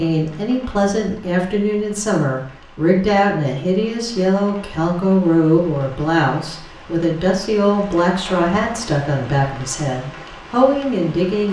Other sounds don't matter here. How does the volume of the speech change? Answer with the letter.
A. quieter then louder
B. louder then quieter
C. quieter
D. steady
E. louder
D.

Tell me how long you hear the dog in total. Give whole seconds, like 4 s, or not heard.
not heard.